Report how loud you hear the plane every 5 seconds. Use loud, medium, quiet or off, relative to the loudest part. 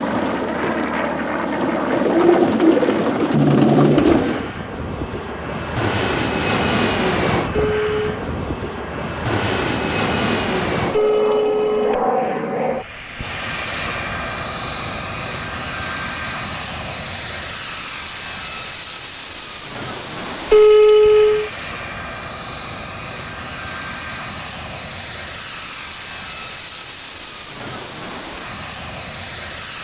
loud, loud, loud, medium, medium, medium.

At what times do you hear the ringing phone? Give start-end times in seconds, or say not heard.
7.5-8.2, 10.9-12.1, 20.5-21.5.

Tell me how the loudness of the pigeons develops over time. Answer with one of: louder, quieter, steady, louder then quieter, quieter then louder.
louder.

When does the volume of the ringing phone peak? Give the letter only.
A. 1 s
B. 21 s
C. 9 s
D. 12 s
B.